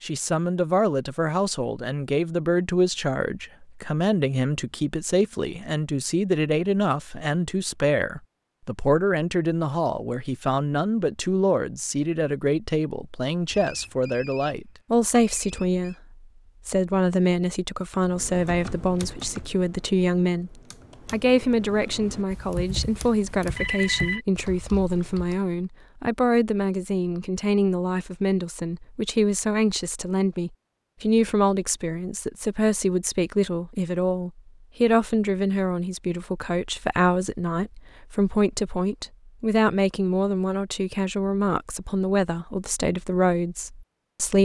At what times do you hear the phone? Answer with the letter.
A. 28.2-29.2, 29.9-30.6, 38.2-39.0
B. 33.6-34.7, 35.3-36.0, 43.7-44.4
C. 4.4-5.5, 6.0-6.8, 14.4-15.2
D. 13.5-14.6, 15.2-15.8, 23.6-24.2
D.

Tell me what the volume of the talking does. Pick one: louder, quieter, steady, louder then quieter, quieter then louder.
steady.